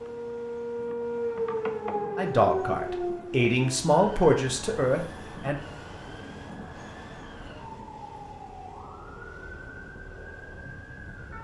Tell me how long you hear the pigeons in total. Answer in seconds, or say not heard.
not heard.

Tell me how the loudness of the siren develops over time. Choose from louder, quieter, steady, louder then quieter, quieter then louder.
quieter.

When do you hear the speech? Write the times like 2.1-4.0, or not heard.
2.1-5.5.